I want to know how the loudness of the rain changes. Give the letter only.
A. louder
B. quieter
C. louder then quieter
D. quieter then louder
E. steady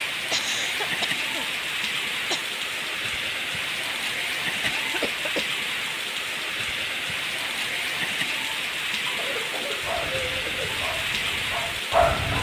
E.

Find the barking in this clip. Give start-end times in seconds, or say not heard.
9.7-12.3.